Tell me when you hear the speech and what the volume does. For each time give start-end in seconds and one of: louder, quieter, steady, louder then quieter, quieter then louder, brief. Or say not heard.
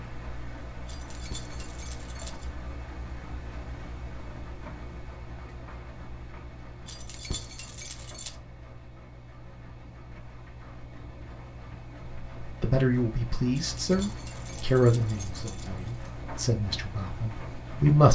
12.4-18.1 quieter.